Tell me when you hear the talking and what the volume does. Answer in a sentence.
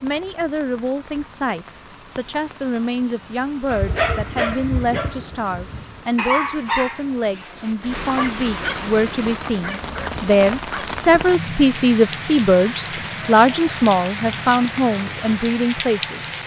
You can hear the talking from 0.0 to 16.4 s, getting louder.